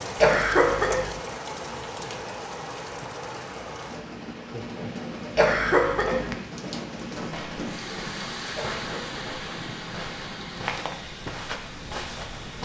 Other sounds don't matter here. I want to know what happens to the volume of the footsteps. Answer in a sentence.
The volume of the footsteps goes up.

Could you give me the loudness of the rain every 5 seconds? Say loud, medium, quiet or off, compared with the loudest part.
loud, loud, medium.